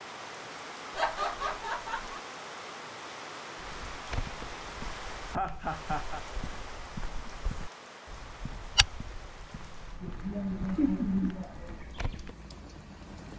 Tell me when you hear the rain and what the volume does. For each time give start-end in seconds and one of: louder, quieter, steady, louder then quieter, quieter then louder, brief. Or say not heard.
0.0-13.3 quieter.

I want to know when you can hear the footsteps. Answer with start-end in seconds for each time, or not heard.
3.5-12.3.